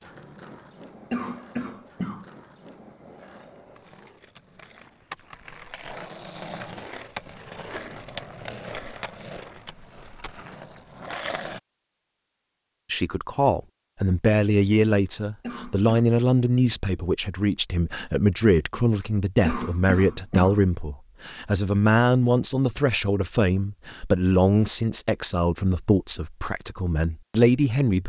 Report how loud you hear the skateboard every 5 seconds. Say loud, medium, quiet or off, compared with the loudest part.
medium, loud, loud, off, off, off.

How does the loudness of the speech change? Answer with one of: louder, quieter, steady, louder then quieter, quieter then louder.
steady.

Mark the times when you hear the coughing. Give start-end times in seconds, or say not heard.
1.1-2.2, 15.4-16.1, 19.4-20.6.